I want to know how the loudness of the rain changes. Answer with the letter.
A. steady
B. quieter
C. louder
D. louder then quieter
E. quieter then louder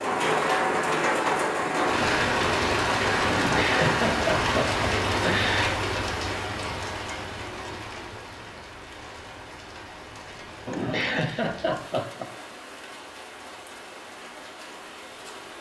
B.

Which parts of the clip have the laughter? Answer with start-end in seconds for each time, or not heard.
3.2-5.8, 10.7-12.3.